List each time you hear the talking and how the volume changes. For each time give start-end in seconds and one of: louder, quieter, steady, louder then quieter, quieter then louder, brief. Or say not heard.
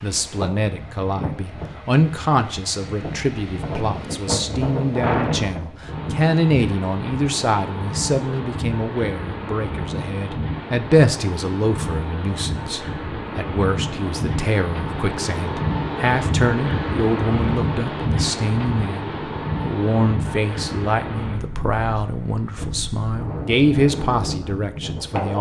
0.0-25.3 steady.